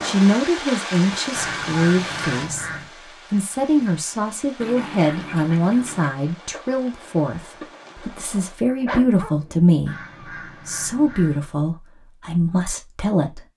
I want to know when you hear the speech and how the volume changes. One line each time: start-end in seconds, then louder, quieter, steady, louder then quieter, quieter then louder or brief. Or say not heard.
0.0-13.4 steady.